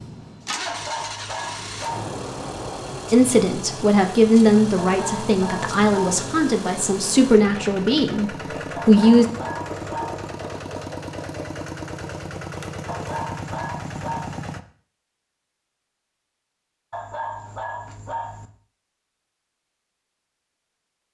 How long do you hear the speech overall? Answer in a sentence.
The speech can be heard for 6 seconds in total.